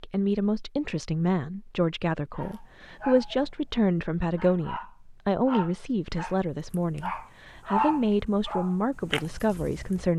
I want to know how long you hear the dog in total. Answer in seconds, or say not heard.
8 s.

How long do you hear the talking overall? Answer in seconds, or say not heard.
10 s.